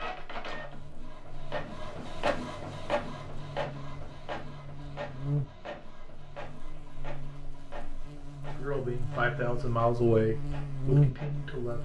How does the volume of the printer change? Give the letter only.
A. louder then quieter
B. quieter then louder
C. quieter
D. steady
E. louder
C.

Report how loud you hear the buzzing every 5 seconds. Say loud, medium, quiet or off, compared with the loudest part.
quiet, medium, loud.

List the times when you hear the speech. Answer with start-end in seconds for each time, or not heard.
8.4-11.8.